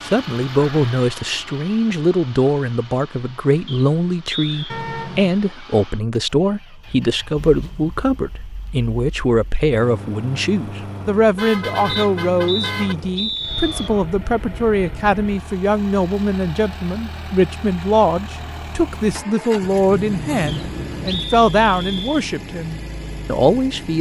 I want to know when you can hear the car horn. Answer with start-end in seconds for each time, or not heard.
4.7-5.4, 11.3-12.9, 19.9-21.2.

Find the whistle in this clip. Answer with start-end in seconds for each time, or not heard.
3.6-4.8, 11.8-13.9, 20.4-22.2.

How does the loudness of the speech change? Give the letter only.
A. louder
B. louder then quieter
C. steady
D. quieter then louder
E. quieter
C.